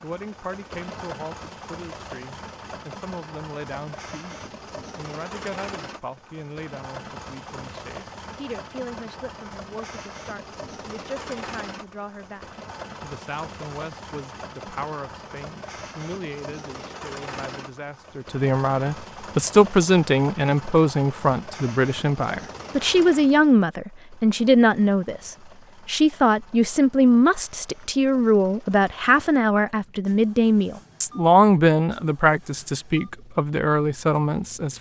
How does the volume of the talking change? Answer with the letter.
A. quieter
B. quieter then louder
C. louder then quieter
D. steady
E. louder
E.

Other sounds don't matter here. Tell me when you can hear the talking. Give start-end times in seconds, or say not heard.
0.0-34.7.